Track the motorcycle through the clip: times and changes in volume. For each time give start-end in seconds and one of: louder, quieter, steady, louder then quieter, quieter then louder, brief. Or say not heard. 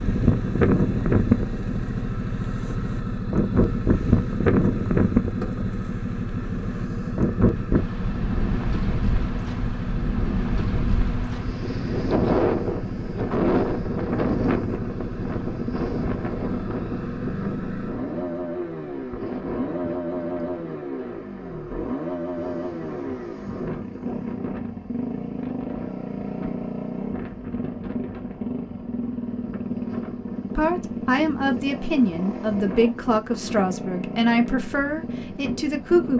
0.0-36.1 steady.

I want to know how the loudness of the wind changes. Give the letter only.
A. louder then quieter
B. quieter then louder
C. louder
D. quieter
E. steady
D.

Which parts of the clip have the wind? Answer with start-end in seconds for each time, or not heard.
0.0-36.1.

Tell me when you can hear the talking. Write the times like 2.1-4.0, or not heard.
30.6-36.1.